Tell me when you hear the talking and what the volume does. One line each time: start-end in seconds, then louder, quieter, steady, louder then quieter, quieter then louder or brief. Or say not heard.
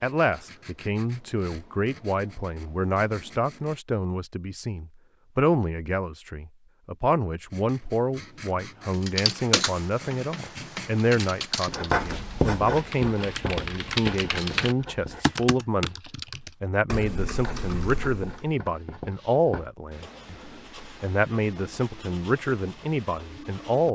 0.0-23.9 steady.